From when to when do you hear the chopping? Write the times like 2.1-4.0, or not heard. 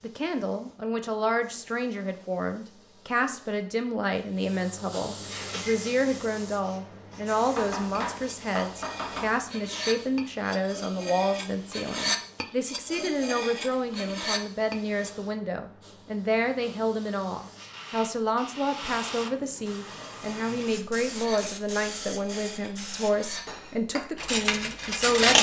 7.5-9.3.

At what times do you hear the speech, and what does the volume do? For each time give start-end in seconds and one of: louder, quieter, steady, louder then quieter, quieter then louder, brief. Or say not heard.
0.0-25.3 steady.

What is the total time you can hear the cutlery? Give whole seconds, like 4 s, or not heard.
15 s.